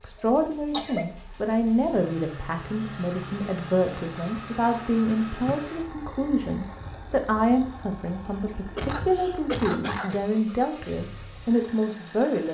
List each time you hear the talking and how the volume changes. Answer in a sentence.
You can hear the talking from 0.0 to 12.4 s, at a steady volume.